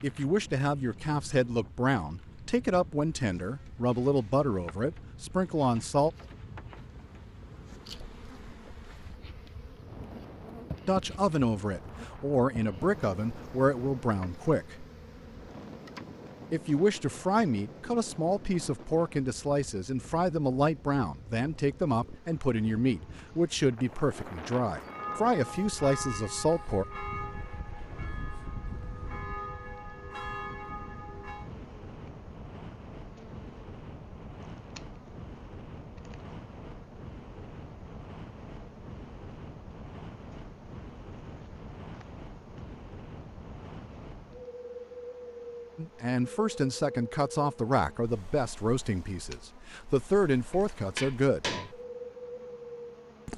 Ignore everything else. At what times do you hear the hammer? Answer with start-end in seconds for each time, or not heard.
50.5-51.8.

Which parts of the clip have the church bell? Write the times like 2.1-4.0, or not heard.
24.9-31.5.